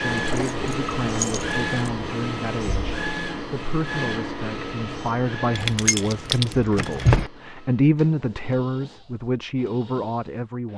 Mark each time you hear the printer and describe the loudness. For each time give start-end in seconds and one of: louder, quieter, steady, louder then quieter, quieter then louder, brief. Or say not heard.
0.0-10.7 quieter.